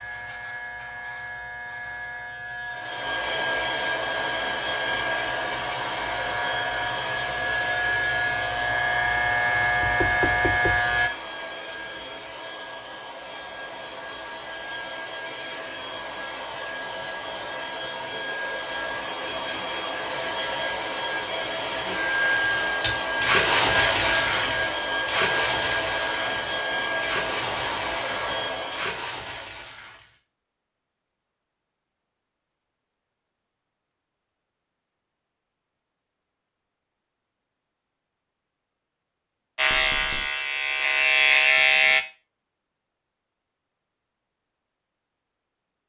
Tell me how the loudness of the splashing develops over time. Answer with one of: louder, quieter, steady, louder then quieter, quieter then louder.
quieter.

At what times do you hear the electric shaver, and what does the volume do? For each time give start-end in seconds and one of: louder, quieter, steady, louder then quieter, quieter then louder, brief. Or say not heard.
0.0-11.1 louder
39.5-42.0 brief.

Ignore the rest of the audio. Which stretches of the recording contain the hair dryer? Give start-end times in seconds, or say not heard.
2.7-29.1.